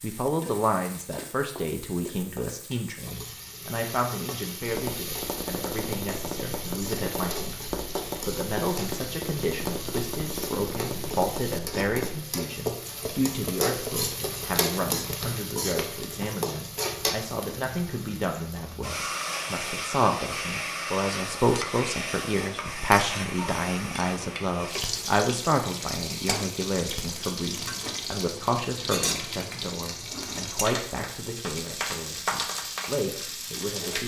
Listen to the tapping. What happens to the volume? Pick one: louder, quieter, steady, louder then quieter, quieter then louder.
steady.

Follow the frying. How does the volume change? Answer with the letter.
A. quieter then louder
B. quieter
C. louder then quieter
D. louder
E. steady
D.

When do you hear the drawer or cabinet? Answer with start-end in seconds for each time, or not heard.
not heard.